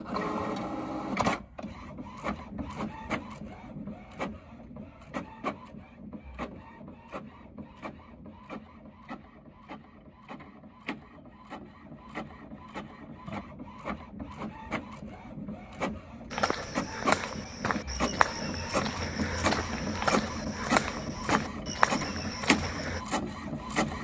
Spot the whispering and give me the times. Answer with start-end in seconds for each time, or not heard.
not heard.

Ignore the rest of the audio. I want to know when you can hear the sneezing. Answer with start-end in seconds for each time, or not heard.
not heard.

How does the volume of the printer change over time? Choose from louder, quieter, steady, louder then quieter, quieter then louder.
quieter then louder.